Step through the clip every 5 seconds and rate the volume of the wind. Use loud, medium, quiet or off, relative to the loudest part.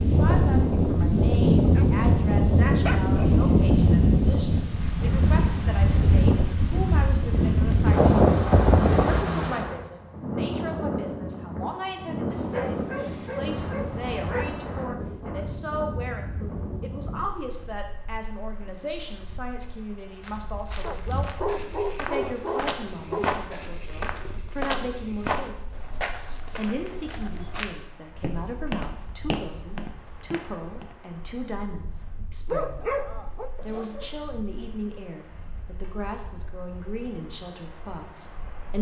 loud, loud, medium, quiet, quiet, quiet, quiet, quiet.